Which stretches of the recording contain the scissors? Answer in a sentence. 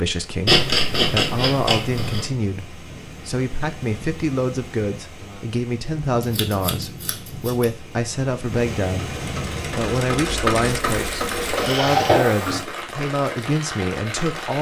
The scissors can be heard from 0.5 to 2.3 s, from 6.2 to 7.7 s and from 11.5 to 12.6 s.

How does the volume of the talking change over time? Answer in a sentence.
The volume of the talking stays about the same.